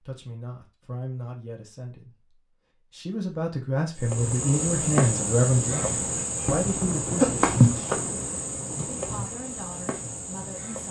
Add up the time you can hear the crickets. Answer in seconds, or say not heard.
7 s.